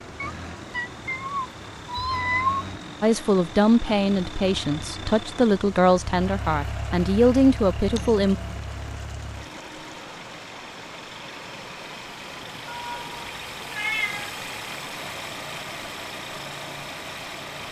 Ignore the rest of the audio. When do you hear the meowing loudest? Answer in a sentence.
The loudest moment of the meowing is at 2 seconds.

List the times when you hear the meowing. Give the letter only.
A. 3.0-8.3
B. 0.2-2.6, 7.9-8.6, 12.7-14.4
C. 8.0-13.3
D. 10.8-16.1
B.